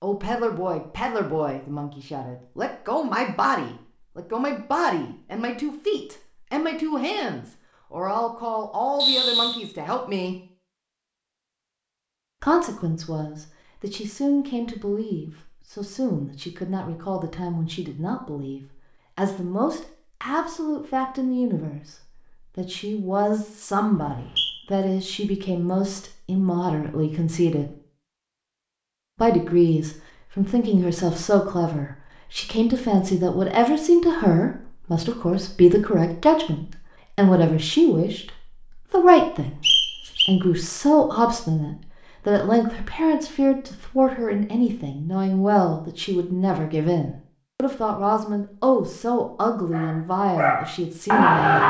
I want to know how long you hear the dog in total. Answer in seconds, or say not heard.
2 s.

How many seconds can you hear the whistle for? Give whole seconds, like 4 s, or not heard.
2 s.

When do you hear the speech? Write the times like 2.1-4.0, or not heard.
0.0-10.3, 12.4-21.9, 22.6-27.8, 29.1-51.6.